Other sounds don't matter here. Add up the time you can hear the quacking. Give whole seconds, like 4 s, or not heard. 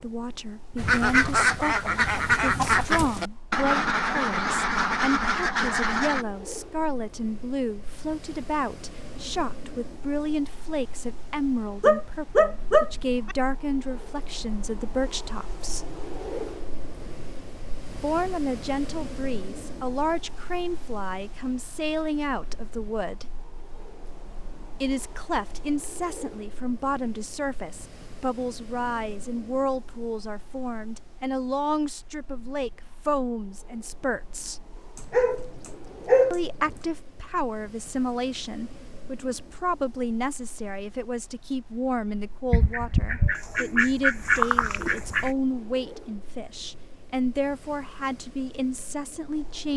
8 s.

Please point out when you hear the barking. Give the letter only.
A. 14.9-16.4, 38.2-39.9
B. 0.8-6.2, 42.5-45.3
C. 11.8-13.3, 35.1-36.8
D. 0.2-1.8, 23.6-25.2
C.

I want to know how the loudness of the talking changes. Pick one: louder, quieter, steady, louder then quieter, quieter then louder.
steady.